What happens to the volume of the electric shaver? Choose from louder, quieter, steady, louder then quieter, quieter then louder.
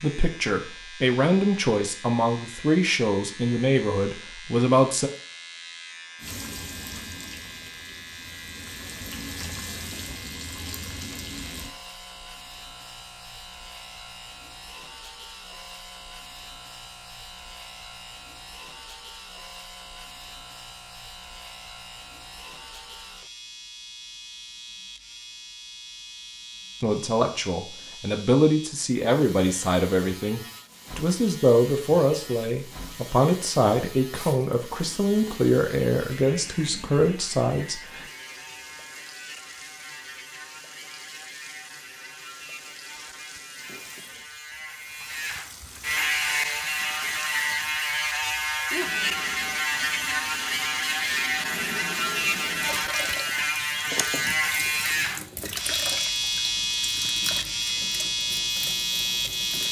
louder.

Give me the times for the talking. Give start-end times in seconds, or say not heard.
0.0-5.1, 26.8-38.0.